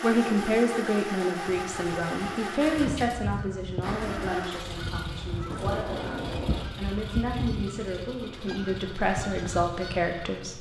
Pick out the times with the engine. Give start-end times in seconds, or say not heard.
0.0-10.5.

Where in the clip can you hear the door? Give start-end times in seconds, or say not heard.
5.5-6.7.